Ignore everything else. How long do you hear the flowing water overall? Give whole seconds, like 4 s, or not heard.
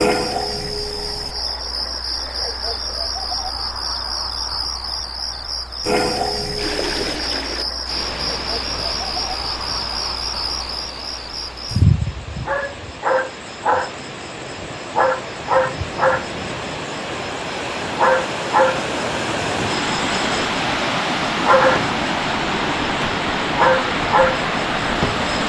19 s.